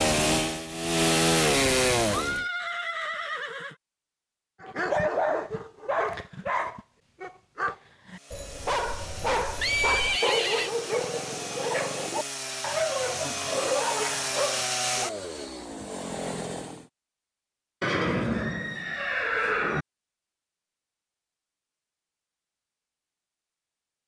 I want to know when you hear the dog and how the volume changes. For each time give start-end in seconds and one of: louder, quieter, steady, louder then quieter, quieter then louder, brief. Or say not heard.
4.6-15.2 steady.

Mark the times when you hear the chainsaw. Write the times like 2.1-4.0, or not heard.
0.0-2.5, 8.1-16.9.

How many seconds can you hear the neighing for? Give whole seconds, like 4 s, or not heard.
5 s.